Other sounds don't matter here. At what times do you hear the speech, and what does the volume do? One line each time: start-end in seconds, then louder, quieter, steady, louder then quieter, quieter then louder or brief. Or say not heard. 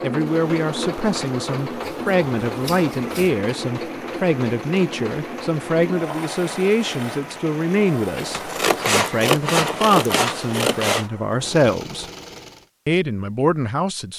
0.0-12.1 steady
12.8-14.1 brief.